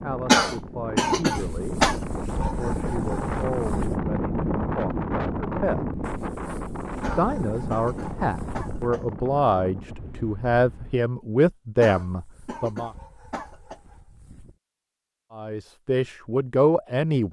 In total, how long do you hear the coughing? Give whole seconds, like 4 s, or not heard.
6 s.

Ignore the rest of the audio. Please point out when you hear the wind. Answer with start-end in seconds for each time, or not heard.
0.0-11.0.